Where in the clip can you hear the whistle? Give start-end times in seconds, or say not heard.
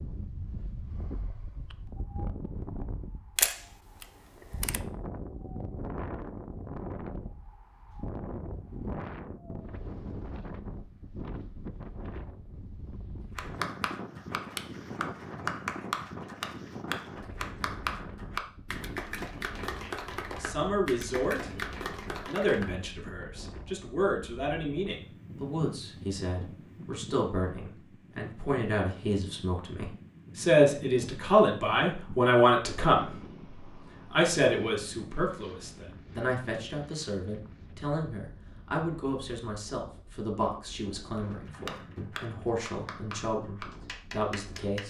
not heard.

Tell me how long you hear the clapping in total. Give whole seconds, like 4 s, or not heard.
13 s.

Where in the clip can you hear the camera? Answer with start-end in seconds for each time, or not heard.
3.4-4.8.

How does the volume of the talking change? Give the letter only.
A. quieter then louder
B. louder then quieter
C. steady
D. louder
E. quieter
B.